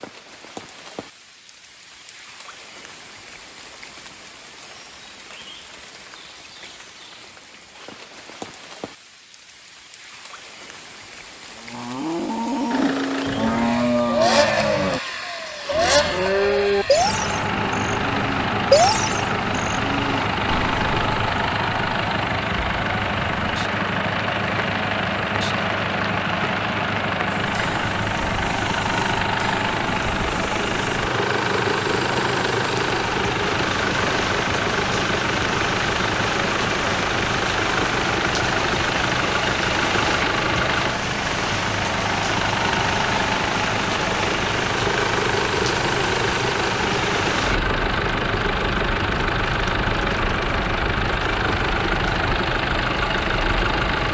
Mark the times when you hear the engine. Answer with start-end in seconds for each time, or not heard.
12.7-54.0.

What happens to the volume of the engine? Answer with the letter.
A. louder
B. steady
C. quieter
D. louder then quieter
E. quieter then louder
B.